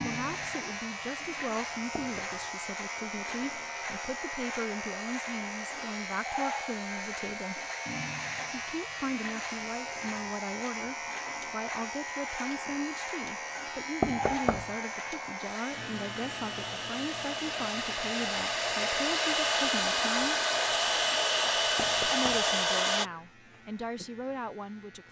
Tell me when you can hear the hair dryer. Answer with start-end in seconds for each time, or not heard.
0.0-23.1.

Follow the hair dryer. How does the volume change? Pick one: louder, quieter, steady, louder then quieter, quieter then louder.
louder.